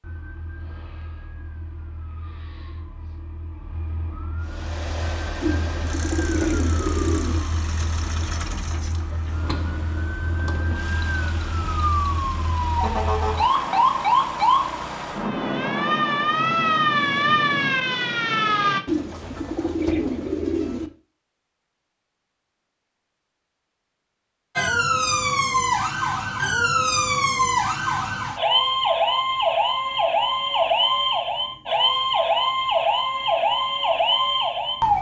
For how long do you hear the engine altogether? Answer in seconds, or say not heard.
11 s.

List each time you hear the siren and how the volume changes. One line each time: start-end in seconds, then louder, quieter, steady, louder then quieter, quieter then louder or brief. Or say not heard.
0.0-18.8 louder
24.6-34.9 steady.